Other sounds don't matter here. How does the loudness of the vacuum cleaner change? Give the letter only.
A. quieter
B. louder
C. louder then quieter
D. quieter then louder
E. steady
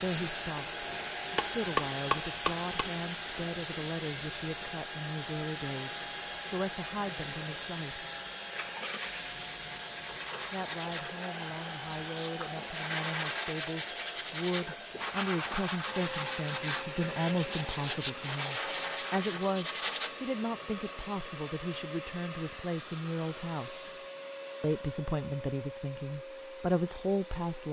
A.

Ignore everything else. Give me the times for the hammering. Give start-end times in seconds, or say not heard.
1.4-3.0.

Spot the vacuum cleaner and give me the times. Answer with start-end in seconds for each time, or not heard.
0.0-27.6.